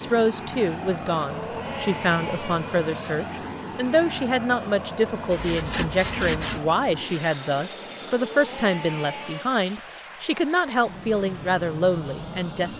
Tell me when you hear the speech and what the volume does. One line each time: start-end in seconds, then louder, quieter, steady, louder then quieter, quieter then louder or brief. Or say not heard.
0.0-12.7 steady.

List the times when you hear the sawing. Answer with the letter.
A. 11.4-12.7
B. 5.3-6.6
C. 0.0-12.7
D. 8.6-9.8
B.